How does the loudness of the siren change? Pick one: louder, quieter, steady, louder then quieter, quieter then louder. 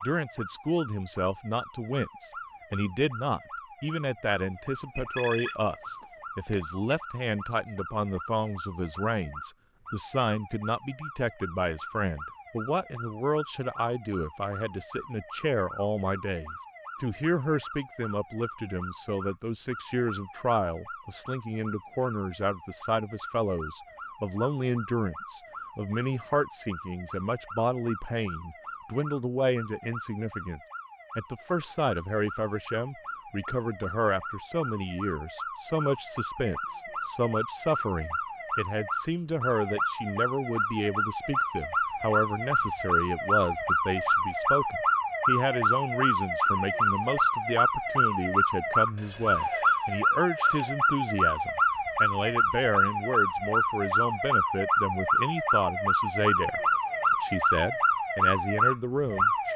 louder.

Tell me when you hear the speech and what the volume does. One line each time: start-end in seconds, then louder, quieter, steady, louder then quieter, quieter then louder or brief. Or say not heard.
0.0-56.6 steady
57.2-59.5 brief.